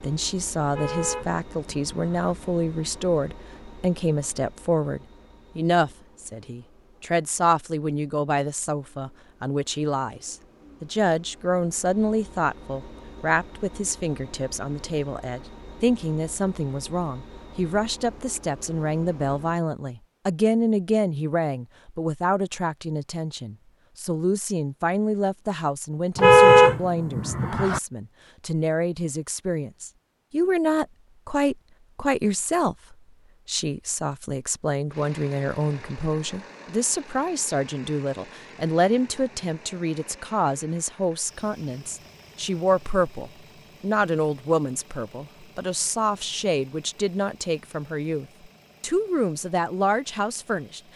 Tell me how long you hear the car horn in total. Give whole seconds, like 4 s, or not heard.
3 s.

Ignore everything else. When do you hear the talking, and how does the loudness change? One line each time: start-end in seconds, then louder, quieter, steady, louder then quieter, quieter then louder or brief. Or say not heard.
0.0-50.9 steady.